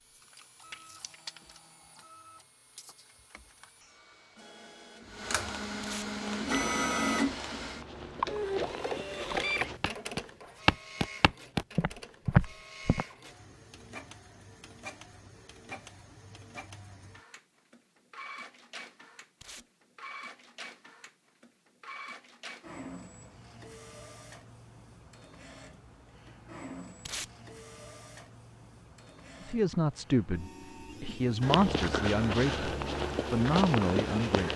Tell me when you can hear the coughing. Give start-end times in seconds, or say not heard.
not heard.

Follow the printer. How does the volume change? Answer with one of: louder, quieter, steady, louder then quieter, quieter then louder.
louder then quieter.